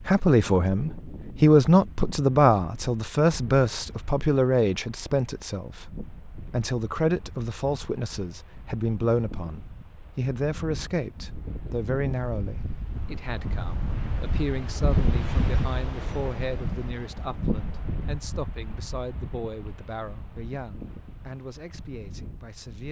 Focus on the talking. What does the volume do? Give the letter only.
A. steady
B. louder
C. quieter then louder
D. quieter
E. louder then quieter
D.